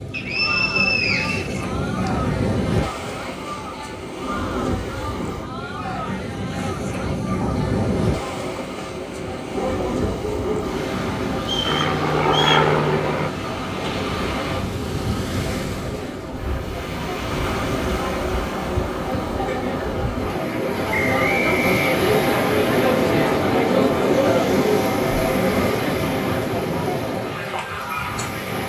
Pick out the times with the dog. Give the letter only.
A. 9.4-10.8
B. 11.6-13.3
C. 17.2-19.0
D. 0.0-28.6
A.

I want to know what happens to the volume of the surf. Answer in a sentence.
The volume of the surf stays about the same.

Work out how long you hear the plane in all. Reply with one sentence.
You can hear the plane for 2 seconds altogether.